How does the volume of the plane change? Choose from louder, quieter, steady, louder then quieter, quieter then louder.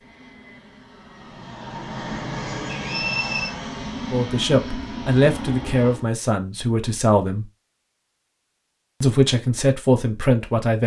louder.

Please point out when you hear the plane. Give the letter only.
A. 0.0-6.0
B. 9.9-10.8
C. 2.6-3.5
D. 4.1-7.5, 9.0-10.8
A.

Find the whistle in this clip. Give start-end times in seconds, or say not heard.
2.6-3.5.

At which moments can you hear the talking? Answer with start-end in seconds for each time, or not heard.
4.1-7.5, 9.0-10.8.